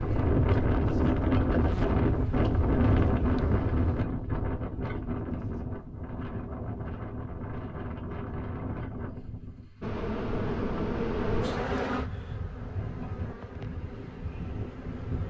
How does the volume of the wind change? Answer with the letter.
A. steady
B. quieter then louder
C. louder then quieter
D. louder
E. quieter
E.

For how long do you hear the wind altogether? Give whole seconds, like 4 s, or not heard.
15 s.